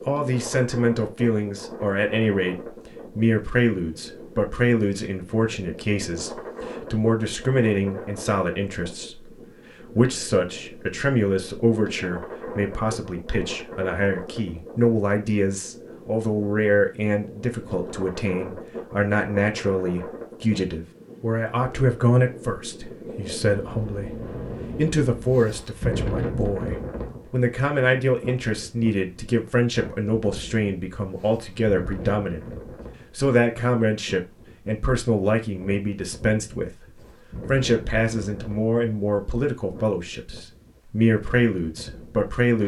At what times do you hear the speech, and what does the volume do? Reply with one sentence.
The speech can be heard from 0.0 to 42.6 s, at a steady volume.